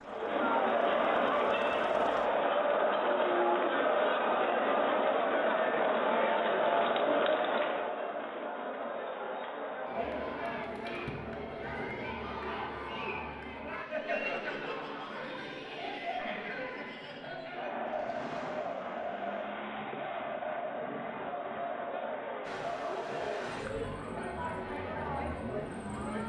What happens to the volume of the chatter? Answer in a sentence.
The volume of the chatter goes down.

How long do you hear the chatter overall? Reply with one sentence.
The chatter can be heard for 26 seconds in total.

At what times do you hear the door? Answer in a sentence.
You can't hear the door here.